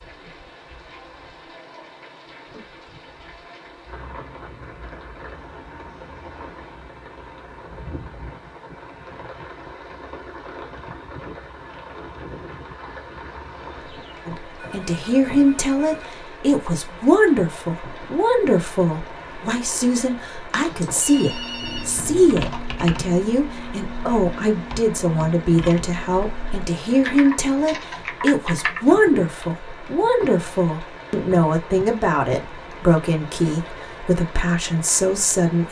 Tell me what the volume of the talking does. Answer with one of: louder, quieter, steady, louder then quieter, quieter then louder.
steady.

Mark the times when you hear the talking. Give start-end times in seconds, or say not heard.
14.2-35.6.